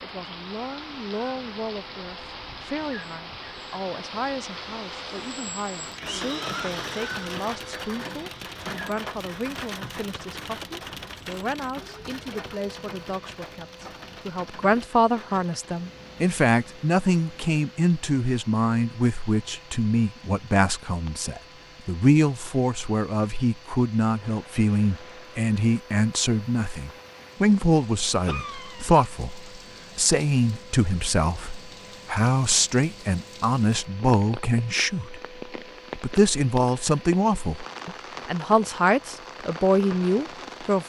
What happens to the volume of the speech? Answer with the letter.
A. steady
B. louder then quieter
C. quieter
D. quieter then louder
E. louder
E.